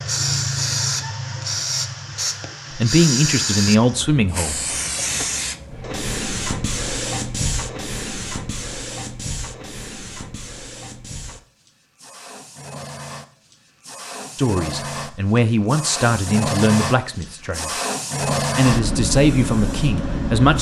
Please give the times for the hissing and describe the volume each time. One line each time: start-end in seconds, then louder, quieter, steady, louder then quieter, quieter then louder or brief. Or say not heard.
0.0-20.5 quieter then louder.